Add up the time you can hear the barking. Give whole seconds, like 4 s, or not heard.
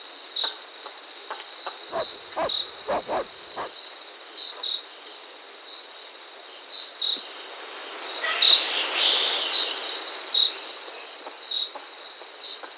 2 s.